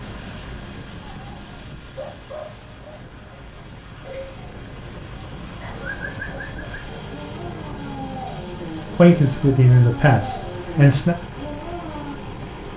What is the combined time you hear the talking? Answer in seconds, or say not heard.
2 s.